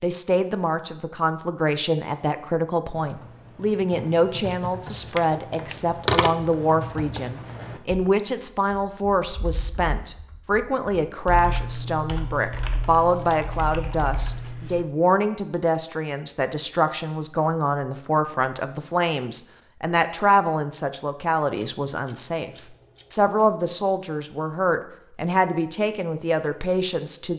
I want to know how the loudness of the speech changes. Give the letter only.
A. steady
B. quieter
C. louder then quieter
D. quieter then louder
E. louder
A.